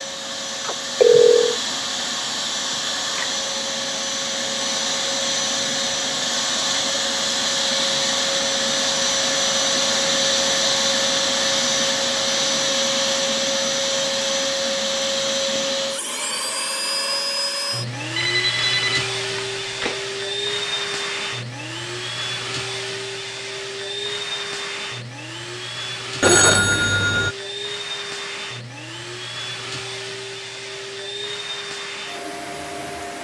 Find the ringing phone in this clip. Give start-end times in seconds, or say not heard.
0.6-1.6, 18.1-19.9, 26.2-27.4.